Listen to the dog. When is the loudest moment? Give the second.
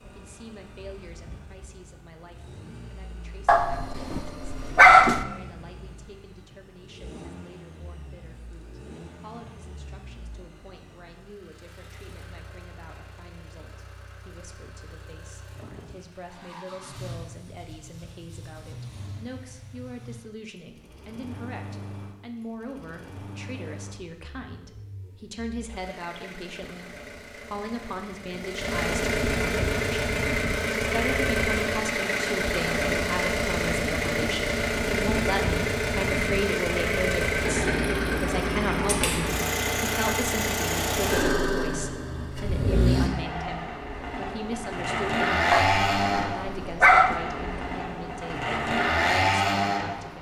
5 s.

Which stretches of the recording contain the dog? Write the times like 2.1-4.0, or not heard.
3.5-5.2, 45.5-47.1.